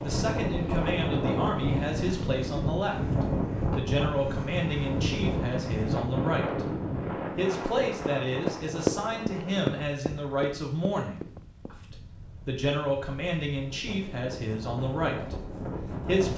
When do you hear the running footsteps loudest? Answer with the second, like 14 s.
9 s.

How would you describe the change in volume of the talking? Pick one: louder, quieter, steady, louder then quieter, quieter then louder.
steady.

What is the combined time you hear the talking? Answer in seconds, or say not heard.
16 s.